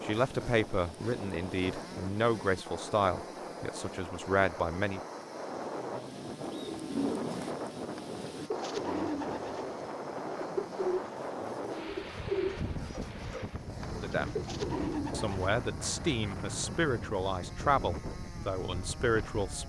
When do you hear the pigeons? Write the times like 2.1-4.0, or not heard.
6.4-15.6.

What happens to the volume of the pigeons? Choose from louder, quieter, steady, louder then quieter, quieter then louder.
steady.